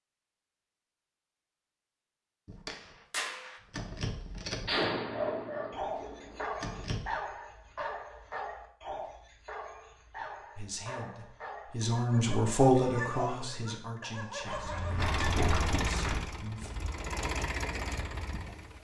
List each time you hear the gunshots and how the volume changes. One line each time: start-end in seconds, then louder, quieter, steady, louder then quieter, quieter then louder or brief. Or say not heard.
2.5-7.1 louder then quieter.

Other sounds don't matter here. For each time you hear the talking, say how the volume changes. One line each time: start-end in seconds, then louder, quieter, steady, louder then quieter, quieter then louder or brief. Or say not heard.
10.6-16.7 louder then quieter.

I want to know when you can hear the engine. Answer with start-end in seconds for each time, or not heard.
14.9-18.7.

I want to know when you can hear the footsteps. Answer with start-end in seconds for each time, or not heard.
14.4-17.1.